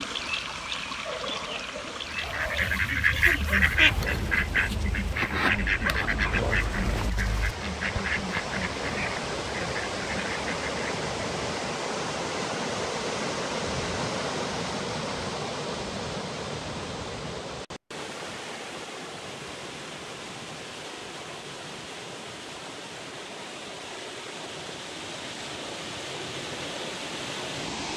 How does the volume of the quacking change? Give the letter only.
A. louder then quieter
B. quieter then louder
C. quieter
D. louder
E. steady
C.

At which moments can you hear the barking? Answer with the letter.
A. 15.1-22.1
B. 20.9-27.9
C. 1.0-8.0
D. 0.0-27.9
C.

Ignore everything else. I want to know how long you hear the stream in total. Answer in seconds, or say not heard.
28 s.